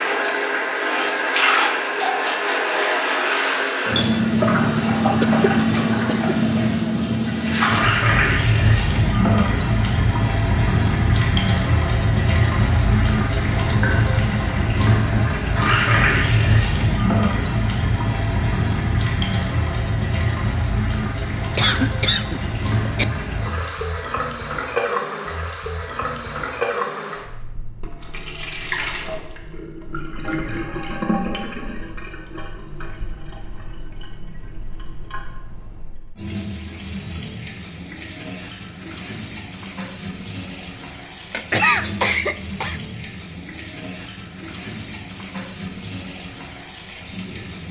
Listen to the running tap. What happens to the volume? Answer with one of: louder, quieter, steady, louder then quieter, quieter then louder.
quieter.